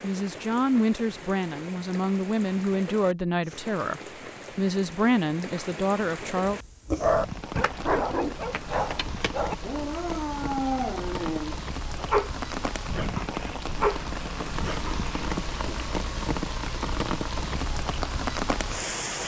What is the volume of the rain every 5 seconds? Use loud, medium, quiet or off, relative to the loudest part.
medium, medium, loud, loud.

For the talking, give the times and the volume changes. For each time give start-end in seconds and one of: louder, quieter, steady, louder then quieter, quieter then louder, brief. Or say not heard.
0.0-6.6 steady.